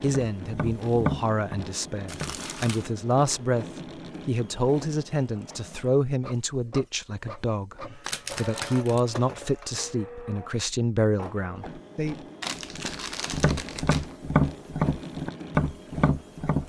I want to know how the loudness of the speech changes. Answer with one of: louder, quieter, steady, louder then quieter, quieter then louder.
steady.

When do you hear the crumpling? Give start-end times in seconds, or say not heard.
2.0-2.9, 8.0-9.0, 12.4-14.2.